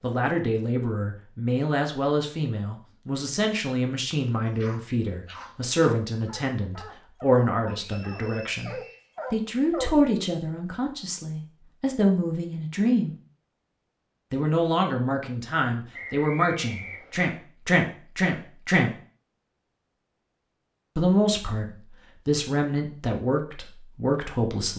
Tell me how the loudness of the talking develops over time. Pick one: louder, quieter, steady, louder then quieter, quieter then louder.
steady.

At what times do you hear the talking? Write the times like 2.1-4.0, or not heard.
0.0-13.2, 14.3-18.9, 20.9-24.7.